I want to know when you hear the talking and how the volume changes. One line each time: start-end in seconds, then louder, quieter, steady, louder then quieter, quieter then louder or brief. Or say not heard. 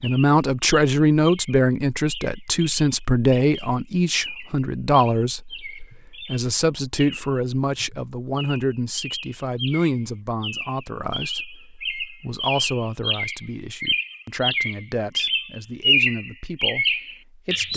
0.0-17.7 quieter.